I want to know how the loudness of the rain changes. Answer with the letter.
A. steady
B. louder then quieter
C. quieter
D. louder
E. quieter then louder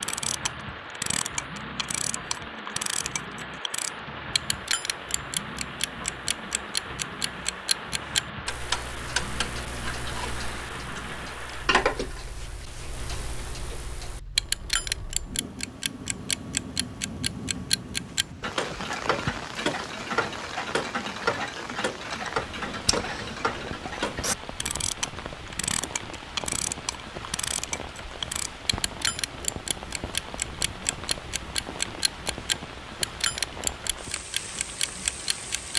A.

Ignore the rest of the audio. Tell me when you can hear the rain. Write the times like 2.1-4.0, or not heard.
0.0-35.7.